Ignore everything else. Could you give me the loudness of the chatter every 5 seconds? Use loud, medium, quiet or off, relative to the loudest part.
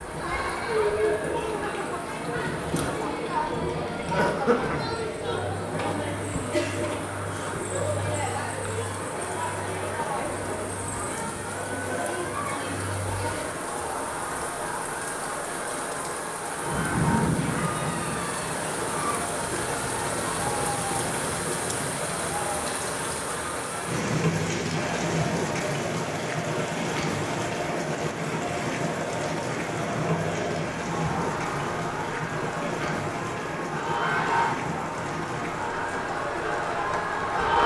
loud, loud, medium, medium, medium, medium, loud, loud.